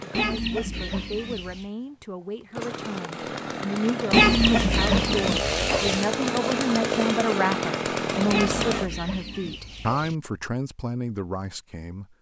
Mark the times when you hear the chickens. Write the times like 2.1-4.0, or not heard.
0.1-1.6, 4.1-6.0, 8.3-10.2.